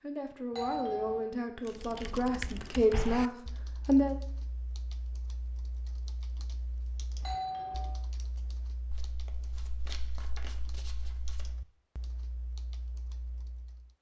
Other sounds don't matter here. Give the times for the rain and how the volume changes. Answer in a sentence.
You can't hear the rain here.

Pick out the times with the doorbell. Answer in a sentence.
The doorbell can be heard from 0.5 to 1.3 s and from 7.2 to 8.0 s.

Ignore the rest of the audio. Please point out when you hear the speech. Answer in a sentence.
The speech can be heard from 0.0 to 4.2 s.